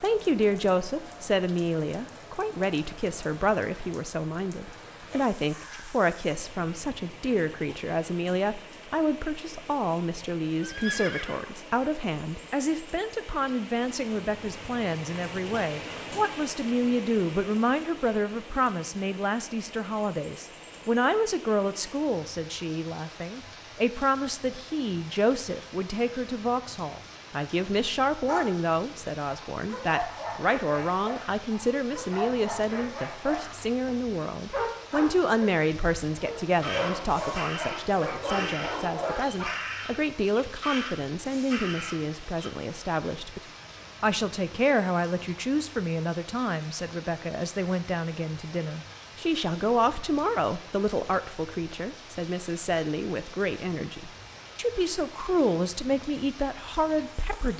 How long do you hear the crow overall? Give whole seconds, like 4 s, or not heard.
6 s.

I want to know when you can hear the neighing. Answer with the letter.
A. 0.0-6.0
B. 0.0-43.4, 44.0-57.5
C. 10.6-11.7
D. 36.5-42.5
C.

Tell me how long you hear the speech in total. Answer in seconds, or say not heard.
57 s.